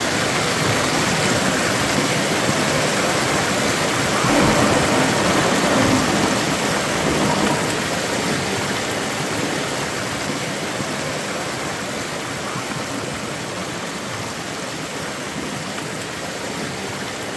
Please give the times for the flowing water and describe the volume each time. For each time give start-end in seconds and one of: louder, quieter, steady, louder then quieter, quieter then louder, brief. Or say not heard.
0.0-17.3 quieter.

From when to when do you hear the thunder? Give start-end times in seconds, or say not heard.
4.2-7.8.